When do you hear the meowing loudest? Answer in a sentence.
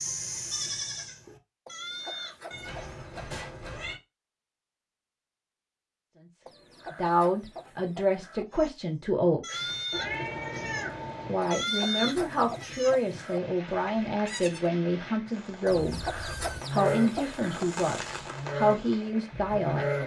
The volume of the meowing peaks at 10 seconds.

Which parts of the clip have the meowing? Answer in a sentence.
You can hear the meowing from 2.5 to 4.0 s, from 9.9 to 11.3 s and from 15.7 to 16.6 s.